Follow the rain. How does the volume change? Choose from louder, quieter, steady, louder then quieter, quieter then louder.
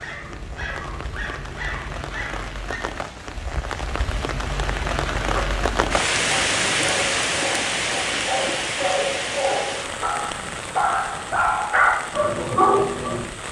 louder then quieter.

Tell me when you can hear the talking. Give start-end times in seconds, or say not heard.
not heard.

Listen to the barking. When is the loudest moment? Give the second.
13 s.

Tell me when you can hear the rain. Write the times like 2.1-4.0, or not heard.
0.0-13.4.